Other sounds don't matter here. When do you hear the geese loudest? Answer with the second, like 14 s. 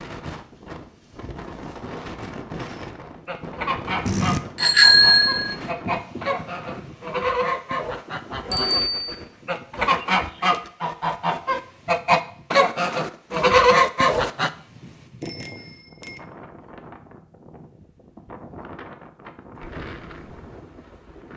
14 s.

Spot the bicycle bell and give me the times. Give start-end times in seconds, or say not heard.
4.0-5.5, 8.5-9.2, 15.2-16.2.